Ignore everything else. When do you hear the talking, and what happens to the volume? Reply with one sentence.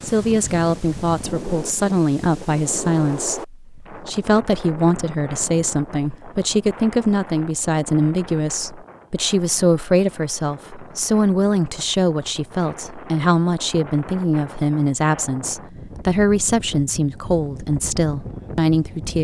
The talking can be heard from 0.0 to 19.1 s, at a steady volume.